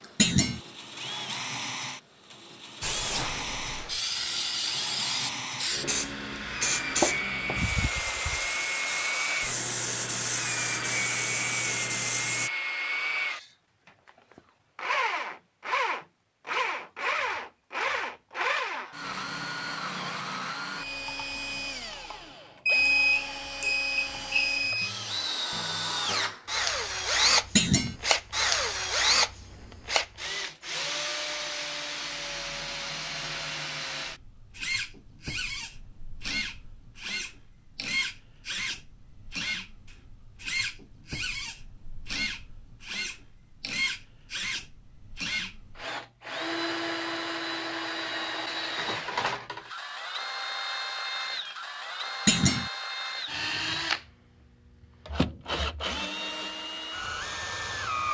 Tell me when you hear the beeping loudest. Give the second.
23 s.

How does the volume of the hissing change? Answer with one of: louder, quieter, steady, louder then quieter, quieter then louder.
steady.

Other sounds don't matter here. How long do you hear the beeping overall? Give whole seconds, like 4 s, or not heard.
2 s.